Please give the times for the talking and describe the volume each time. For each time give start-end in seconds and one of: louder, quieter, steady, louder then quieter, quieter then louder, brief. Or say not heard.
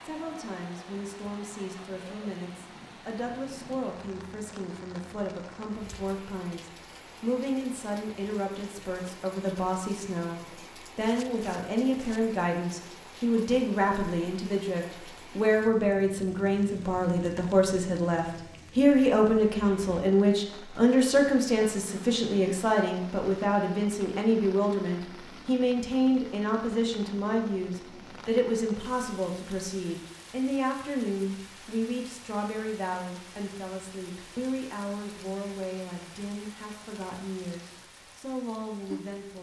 0.0-39.3 louder then quieter.